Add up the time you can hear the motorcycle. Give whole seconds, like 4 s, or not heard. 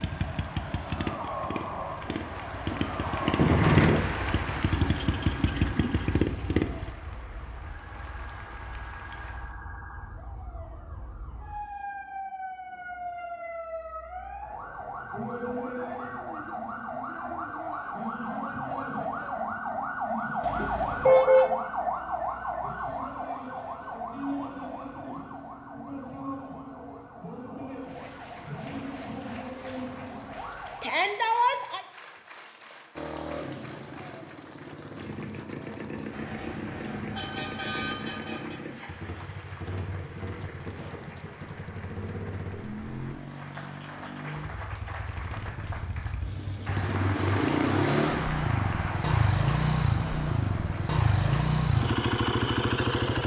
27 s.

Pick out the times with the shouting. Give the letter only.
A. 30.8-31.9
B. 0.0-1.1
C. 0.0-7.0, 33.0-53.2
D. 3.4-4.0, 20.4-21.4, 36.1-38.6
A.